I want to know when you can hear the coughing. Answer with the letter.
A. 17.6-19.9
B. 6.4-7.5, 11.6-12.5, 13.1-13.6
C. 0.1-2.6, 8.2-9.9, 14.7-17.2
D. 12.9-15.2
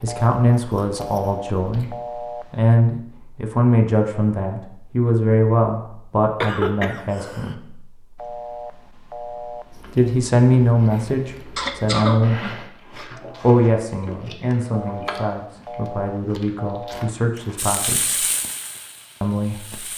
B.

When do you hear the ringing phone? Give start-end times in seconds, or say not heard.
0.1-2.6, 8.2-9.9, 14.7-17.2.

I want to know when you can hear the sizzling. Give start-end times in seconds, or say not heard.
17.6-19.9.